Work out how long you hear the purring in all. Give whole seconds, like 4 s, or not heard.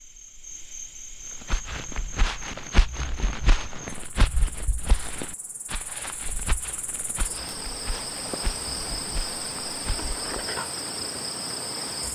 not heard.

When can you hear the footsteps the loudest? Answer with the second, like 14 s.
3 s.